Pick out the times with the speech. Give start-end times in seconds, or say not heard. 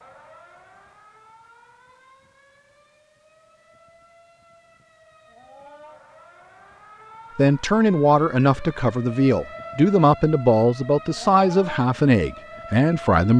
7.3-13.3.